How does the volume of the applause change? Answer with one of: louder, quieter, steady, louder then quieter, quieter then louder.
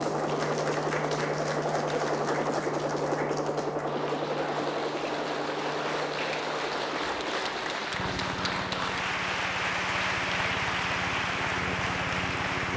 louder.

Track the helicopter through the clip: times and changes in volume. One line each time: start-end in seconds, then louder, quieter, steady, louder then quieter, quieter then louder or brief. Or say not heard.
0.0-12.7 quieter.